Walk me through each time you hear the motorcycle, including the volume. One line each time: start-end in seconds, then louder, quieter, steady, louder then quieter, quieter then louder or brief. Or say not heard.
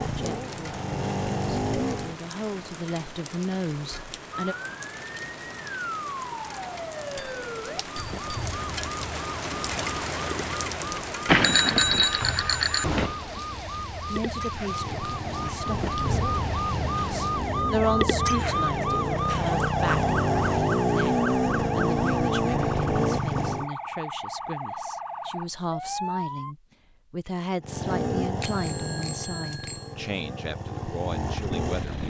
0.0-2.1 brief
14.6-23.7 louder
27.6-32.0 quieter then louder.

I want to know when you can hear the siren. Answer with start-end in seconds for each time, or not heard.
4.3-26.6.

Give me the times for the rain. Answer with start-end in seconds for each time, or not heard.
0.0-17.6.